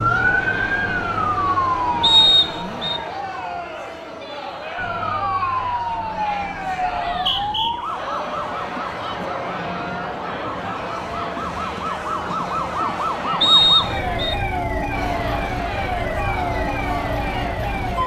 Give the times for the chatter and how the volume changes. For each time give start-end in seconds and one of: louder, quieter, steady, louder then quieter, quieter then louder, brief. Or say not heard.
0.0-18.0 steady.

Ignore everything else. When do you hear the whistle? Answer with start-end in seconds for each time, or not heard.
2.0-3.0, 7.1-7.8, 13.4-14.3.